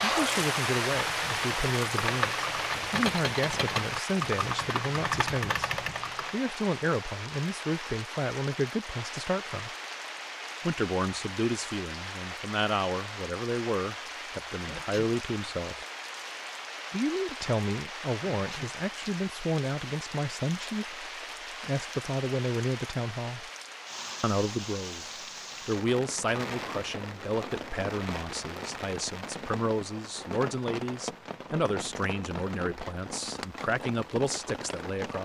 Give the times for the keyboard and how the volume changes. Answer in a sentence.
You can hear the keyboard from 0.0 to 6.3 s, getting louder.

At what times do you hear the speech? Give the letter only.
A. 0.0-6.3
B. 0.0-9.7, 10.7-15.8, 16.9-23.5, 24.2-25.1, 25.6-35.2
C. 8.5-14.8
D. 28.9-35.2
B.